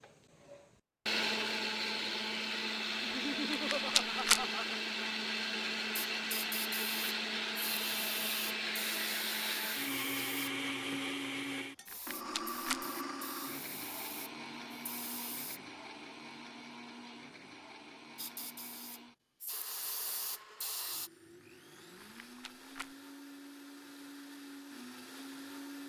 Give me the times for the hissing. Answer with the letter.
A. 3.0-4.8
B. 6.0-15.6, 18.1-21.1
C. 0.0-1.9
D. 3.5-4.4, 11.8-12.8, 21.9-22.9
B.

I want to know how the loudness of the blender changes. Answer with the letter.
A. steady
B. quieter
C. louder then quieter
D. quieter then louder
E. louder
B.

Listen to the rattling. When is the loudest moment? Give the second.
4 s.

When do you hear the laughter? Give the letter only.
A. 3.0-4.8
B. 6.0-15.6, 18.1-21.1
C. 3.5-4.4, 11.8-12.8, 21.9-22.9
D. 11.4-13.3
A.